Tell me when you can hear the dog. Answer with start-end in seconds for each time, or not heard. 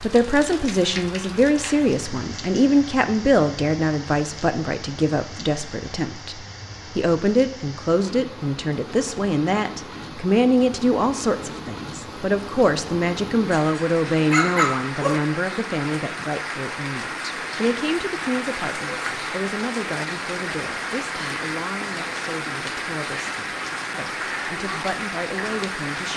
13.5-15.2.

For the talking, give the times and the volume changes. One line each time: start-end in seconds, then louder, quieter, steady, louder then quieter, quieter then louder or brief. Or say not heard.
0.0-26.1 quieter.